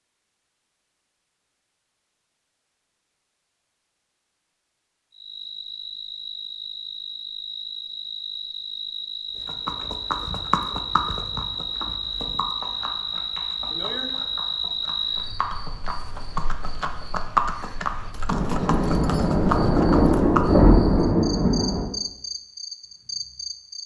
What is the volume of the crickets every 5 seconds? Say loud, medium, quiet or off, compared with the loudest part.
off, medium, loud, medium, medium.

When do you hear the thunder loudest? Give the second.
21 s.